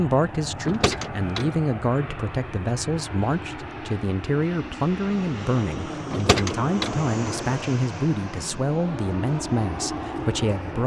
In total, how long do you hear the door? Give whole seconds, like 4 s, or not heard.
2 s.